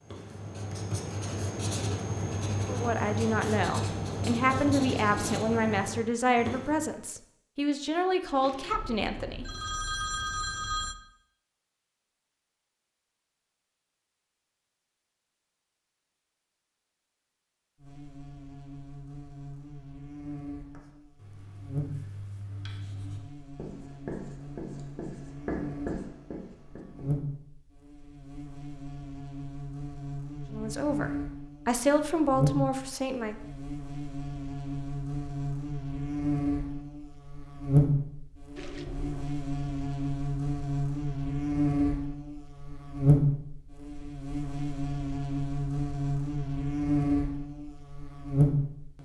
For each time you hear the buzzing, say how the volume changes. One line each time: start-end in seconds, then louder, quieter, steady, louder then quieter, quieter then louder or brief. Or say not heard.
17.8-49.0 louder.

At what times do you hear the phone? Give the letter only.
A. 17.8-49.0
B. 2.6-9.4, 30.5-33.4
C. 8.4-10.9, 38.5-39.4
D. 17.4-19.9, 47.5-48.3
C.